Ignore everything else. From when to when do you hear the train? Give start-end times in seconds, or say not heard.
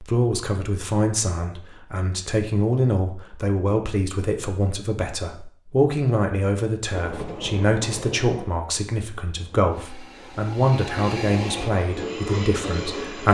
6.9-13.2.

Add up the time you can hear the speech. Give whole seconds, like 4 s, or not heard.
13 s.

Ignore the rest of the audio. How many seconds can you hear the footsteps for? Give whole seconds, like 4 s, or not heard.
not heard.